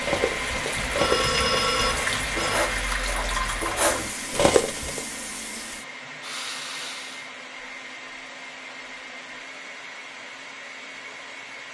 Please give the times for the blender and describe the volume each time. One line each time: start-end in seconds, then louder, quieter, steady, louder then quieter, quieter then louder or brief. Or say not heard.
0.0-11.6 quieter.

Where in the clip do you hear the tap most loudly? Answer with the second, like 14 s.
3 s.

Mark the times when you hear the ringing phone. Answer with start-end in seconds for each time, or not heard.
0.9-2.7.